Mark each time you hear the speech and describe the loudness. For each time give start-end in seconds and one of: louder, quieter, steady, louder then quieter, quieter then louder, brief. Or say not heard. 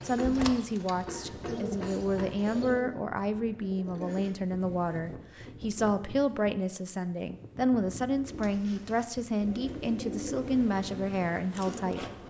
0.0-12.1 steady.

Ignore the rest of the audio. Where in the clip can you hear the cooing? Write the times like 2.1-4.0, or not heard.
0.0-4.3, 8.2-12.2.